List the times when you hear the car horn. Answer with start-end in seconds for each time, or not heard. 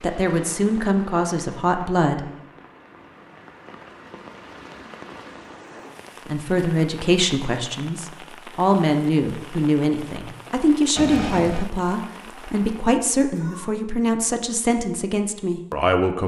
10.9-11.7.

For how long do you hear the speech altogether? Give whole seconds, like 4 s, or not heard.
12 s.